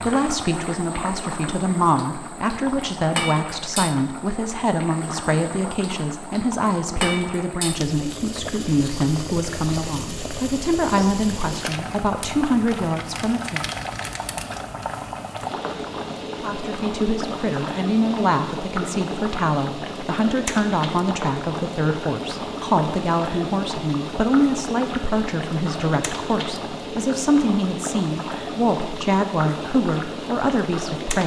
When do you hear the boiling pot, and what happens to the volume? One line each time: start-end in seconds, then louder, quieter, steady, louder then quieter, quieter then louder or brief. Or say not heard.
0.0-31.2 steady.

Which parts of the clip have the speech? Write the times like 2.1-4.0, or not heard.
0.0-13.7, 16.4-31.2.